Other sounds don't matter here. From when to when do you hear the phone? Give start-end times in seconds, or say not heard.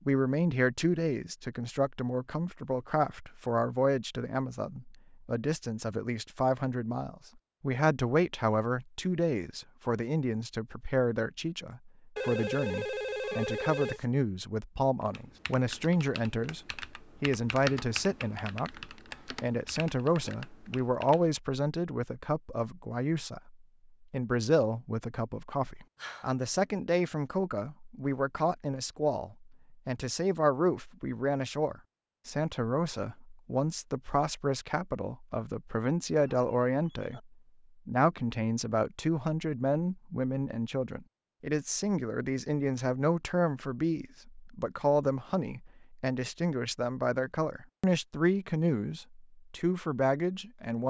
12.2-14.1, 25.9-26.4, 36.1-37.2.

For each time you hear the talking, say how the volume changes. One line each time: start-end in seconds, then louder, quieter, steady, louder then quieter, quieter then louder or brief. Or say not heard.
0.1-50.8 steady.